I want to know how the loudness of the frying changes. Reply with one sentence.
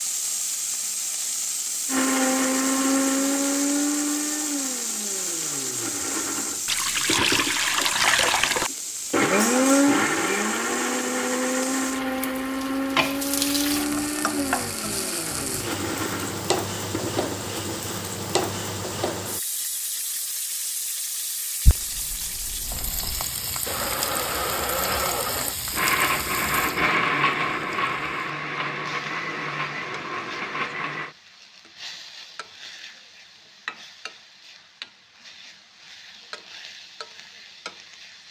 The volume of the frying goes down.